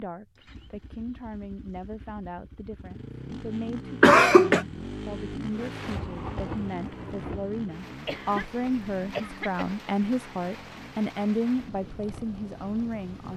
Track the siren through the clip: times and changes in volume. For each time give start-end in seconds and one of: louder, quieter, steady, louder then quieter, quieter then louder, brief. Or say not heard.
not heard.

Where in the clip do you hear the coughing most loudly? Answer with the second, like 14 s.
4 s.